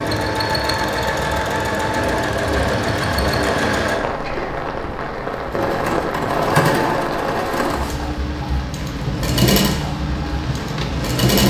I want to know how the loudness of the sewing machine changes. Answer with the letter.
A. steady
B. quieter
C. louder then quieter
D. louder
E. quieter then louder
A.